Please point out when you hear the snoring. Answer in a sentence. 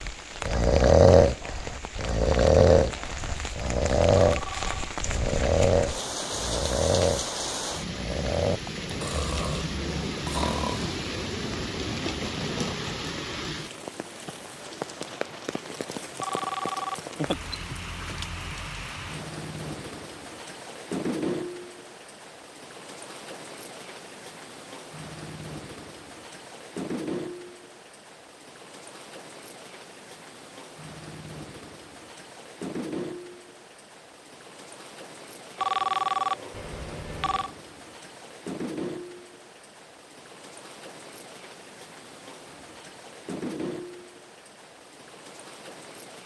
You can hear the snoring from 0.5 to 10.9 s.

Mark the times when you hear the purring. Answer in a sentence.
You can't hear the purring here.